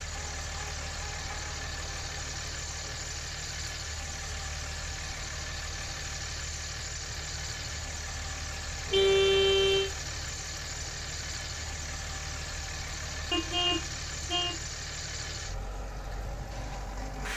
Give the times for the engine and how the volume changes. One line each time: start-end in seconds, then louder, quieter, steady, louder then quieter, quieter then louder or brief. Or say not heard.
0.0-17.3 steady.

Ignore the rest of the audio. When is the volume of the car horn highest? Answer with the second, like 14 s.
9 s.